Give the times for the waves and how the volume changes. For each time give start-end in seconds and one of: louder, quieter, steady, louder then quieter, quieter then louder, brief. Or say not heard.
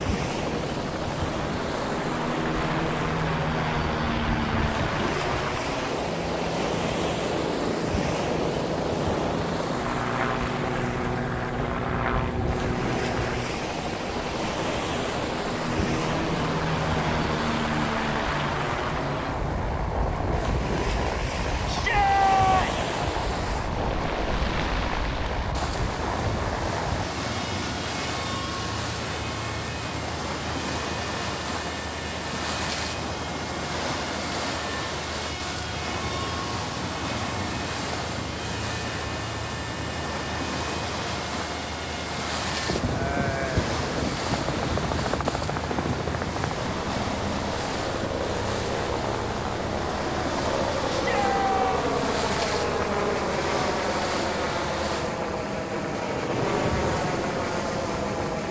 0.0-58.4 steady.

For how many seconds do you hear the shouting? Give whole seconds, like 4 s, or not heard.
2 s.